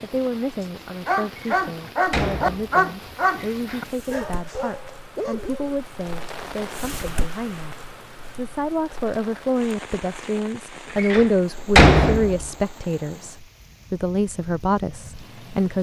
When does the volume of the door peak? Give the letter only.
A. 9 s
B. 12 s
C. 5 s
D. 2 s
B.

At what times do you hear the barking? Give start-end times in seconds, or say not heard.
0.2-5.8.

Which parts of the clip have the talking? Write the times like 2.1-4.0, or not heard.
0.0-7.8, 8.3-15.7.